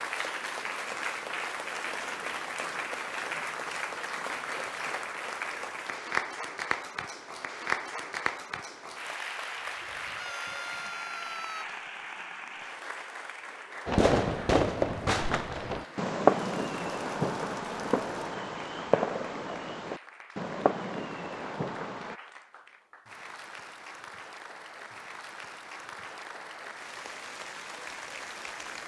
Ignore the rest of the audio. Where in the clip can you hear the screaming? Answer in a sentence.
You can hear the screaming from 10.1 to 11.7 s.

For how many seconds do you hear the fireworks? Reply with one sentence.
You can hear the fireworks for 8 seconds altogether.